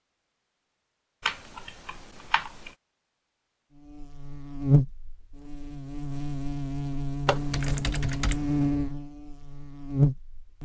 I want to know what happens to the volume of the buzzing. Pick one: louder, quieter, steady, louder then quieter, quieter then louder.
quieter then louder.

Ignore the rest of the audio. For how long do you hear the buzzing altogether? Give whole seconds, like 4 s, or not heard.
7 s.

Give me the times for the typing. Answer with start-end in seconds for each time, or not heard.
1.2-2.7, 7.2-8.8.